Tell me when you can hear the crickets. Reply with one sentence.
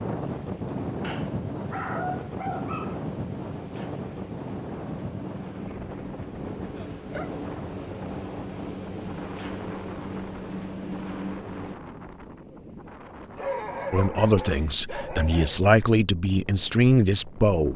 You can hear the crickets from 0.0 to 11.8 s.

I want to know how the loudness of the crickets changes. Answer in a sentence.
The loudness of the crickets goes up.